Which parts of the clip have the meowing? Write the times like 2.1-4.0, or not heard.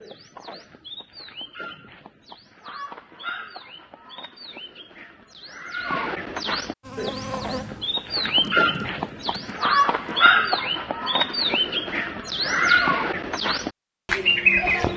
not heard.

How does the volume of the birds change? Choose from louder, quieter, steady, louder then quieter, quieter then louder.
louder.